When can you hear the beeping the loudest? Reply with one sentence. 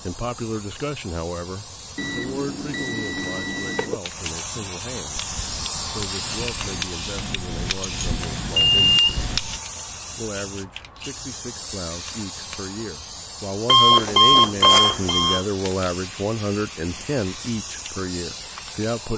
The loudest moment of the beeping is at 14 seconds.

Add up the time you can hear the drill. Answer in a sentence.
You can't hear the drill here.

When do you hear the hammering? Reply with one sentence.
The hammering can be heard from 5.2 to 9.6 s.